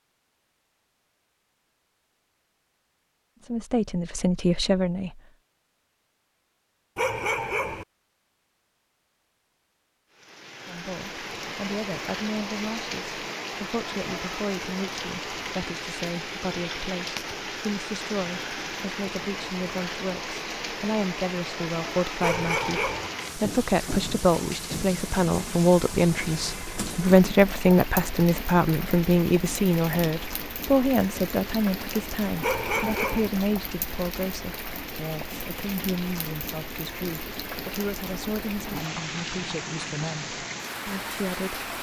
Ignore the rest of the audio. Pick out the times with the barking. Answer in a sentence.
You can hear the barking from 7.0 to 7.8 s, from 22.2 to 23.1 s and from 32.4 to 33.3 s.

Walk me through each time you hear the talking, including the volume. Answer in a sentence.
The talking can be heard briefly from 3.4 to 5.2 s; and from 10.7 to 41.6 s, getting louder then quieter.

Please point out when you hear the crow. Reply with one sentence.
The crow can't be heard in this clip.